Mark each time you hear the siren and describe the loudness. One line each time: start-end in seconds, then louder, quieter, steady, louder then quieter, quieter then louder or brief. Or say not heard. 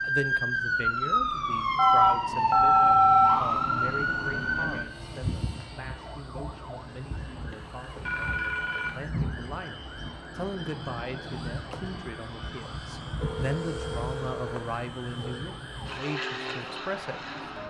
0.0-17.6 quieter.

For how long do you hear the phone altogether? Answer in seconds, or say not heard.
5 s.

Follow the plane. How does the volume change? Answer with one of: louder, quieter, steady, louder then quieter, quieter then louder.
steady.